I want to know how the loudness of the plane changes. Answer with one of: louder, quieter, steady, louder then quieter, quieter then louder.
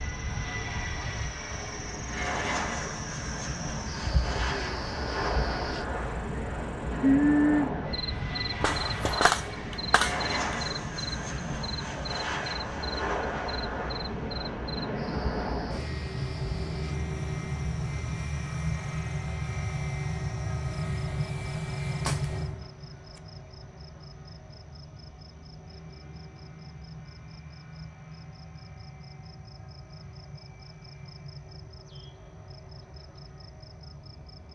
quieter.